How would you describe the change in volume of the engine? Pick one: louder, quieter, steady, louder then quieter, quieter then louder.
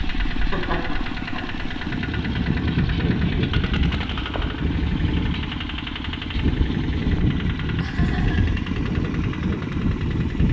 steady.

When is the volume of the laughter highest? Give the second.
1 s.